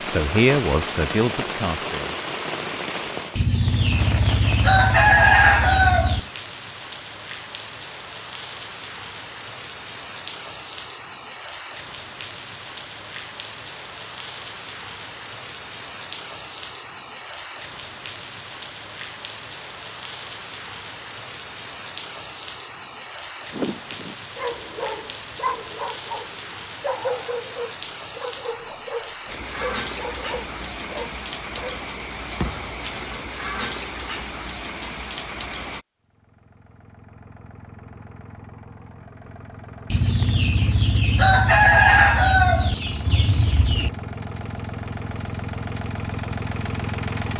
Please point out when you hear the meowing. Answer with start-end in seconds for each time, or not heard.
not heard.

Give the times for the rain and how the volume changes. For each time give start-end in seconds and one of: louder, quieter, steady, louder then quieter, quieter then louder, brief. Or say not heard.
0.0-35.9 steady.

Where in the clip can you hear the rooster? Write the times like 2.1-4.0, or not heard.
3.4-6.2, 39.9-43.9.